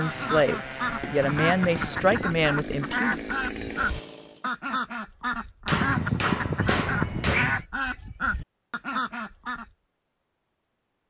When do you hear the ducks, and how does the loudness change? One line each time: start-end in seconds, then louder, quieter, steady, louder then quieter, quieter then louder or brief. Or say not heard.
0.0-9.7 steady.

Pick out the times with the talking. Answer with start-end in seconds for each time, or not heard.
0.0-3.2.